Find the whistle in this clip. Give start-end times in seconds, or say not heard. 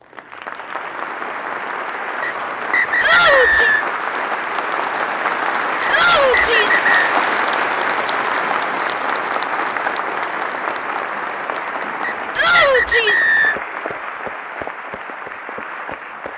2.2-3.9, 5.8-7.2, 12.0-13.6.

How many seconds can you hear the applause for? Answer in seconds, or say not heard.
16 s.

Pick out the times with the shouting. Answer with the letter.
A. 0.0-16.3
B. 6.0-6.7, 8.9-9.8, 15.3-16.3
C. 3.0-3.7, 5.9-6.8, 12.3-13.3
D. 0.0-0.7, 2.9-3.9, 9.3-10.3
C.